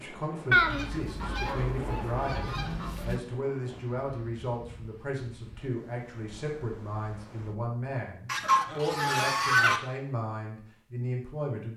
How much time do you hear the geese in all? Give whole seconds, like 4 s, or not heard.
4 s.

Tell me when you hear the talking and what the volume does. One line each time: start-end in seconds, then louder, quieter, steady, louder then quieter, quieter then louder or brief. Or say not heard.
0.0-11.7 steady.